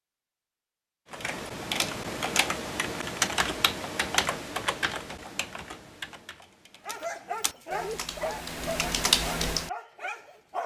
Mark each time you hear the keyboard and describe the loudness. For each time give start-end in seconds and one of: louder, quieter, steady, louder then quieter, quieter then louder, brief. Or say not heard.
1.1-9.7 quieter then louder.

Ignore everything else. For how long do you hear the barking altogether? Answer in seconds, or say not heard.
4 s.